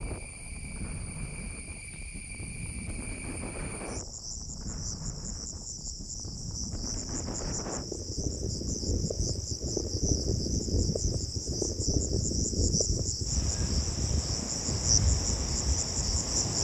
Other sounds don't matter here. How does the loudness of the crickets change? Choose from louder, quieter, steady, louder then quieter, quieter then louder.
louder.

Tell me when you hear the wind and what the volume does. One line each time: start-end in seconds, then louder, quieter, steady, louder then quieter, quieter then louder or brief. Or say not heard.
0.0-16.5 louder.